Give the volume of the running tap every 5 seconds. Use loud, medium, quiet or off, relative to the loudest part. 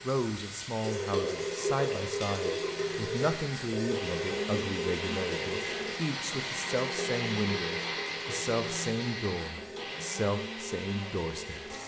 loud, medium, medium.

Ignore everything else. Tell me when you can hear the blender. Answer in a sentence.
The blender can be heard from 0.0 to 11.8 s.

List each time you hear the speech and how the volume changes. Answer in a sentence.
You can hear the speech from 0.0 to 11.8 s, at a steady volume.